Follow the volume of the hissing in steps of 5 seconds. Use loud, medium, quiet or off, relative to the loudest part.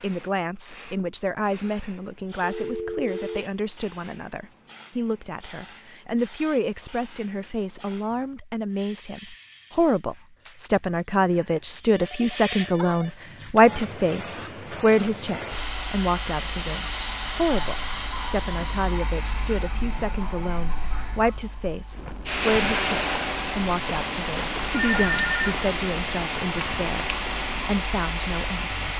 quiet, quiet, medium, loud, loud, loud.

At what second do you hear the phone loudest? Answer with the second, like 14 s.
25 s.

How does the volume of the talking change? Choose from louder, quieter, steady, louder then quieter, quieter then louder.
louder then quieter.